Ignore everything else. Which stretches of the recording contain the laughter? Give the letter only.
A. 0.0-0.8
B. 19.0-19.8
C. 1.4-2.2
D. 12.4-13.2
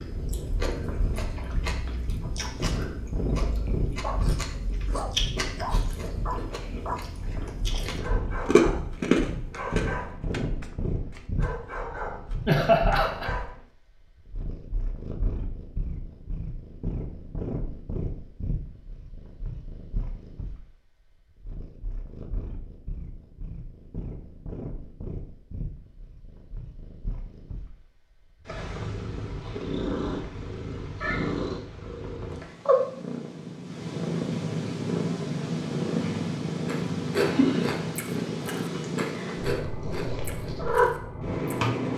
D.